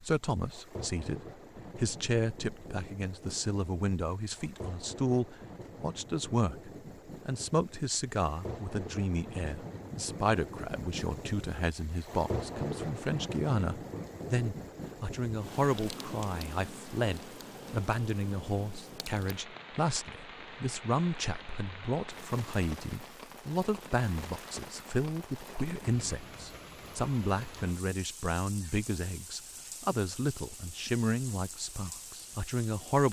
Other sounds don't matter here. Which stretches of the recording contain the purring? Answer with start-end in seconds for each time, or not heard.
not heard.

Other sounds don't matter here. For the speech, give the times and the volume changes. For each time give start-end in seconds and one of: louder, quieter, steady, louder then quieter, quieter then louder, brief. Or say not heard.
0.0-33.0 steady.